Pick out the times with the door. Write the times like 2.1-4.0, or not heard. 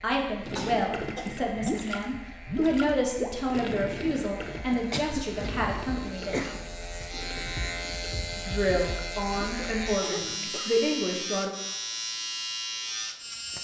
not heard.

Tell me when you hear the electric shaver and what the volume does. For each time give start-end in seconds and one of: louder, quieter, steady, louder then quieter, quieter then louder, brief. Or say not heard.
0.0-13.6 louder.